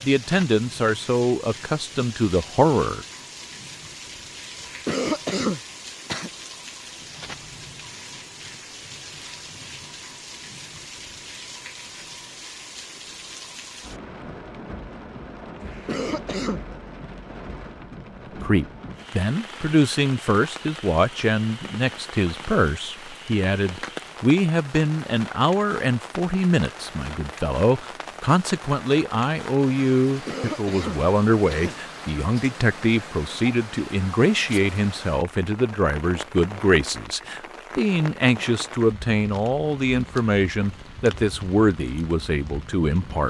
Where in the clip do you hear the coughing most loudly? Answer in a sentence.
The volume of the coughing peaks at 5 seconds.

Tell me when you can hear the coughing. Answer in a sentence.
You can hear the coughing from 4.6 to 6.3 s, from 15.6 to 16.6 s and from 30.1 to 31.8 s.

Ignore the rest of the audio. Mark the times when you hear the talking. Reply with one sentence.
The talking can be heard from 0.0 to 3.0 s and from 18.4 to 43.2 s.